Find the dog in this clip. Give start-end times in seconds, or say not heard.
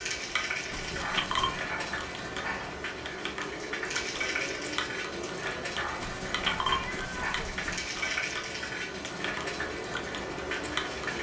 1.0-2.8, 5.8-7.5.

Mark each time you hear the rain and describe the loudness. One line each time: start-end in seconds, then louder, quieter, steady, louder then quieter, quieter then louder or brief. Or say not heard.
0.0-11.1 steady.